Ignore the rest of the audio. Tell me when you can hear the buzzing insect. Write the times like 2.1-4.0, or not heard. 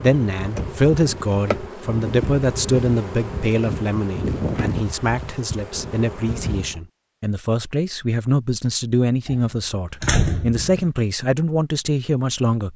0.0-6.8.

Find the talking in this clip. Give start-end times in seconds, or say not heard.
0.0-12.7.